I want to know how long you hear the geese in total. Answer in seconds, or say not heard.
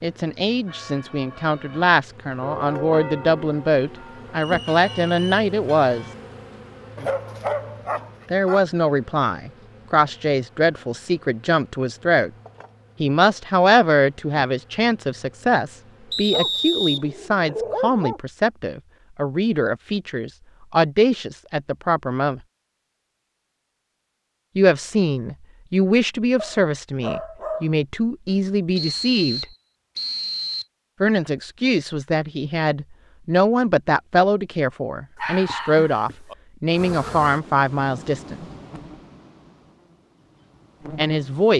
not heard.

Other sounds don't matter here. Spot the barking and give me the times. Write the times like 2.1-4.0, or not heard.
7.0-8.6, 16.3-18.2, 26.4-27.8, 35.1-36.4.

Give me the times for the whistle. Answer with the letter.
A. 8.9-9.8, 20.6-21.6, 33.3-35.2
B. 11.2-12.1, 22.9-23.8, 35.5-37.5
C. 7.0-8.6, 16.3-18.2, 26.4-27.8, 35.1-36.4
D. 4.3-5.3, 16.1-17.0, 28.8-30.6
D.